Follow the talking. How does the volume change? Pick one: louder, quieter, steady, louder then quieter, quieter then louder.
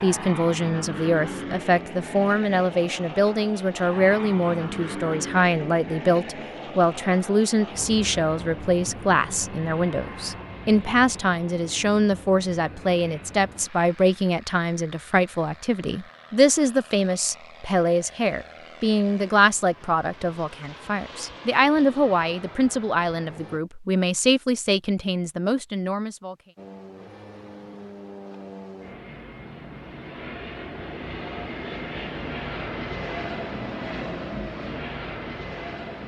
steady.